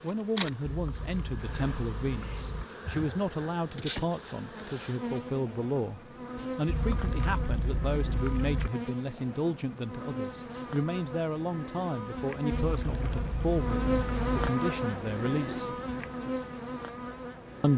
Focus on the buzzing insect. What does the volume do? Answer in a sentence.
The volume of the buzzing insect goes up.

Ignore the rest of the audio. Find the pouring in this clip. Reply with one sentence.
The pouring can be heard from 0.7 to 2.6 s, from 6.7 to 8.7 s and from 12.5 to 14.3 s.